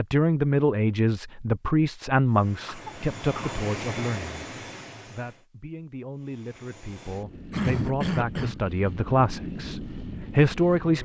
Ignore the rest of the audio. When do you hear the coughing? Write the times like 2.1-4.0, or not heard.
2.6-3.6, 7.5-8.6.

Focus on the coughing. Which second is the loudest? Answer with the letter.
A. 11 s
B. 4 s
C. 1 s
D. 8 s
D.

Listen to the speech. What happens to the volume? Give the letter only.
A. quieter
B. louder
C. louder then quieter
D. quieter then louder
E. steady
D.